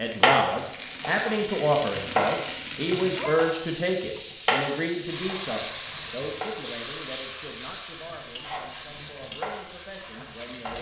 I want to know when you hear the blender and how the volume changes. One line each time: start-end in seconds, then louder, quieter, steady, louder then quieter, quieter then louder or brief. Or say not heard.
not heard.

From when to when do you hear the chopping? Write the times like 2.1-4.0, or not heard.
0.2-3.5, 4.5-6.5, 8.4-10.7.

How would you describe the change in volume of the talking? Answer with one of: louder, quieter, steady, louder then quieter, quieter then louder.
quieter.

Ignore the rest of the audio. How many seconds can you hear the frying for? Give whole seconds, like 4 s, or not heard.
11 s.